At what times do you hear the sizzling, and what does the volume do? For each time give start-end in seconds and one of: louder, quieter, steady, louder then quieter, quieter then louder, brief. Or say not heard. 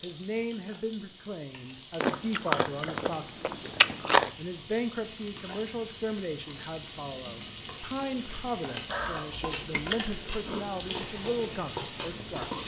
0.0-12.6 louder.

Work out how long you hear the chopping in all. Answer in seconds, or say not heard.
not heard.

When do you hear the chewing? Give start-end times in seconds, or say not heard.
2.0-4.3, 8.2-10.8.